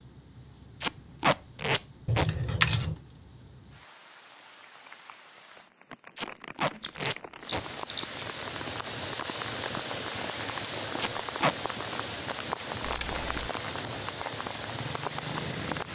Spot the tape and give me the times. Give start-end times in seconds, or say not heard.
0.8-2.2, 6.2-7.7, 10.9-11.6.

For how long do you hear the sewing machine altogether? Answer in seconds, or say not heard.
not heard.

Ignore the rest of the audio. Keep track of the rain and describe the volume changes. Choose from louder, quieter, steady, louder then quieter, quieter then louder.
louder.